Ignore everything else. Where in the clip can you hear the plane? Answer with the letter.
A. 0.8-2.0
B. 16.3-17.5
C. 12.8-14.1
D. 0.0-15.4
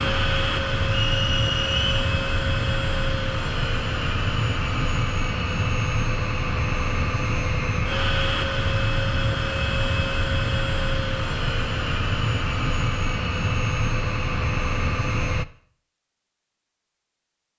D.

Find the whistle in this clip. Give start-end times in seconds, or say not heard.
0.8-2.0.